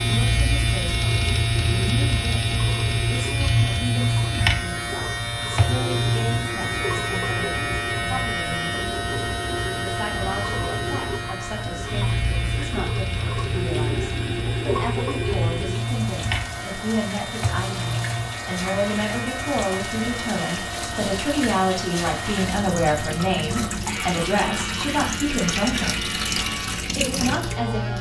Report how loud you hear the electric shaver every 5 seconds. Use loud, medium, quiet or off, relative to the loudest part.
loud, loud, medium, medium, medium, medium.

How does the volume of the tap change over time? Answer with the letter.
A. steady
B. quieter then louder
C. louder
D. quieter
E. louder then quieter
C.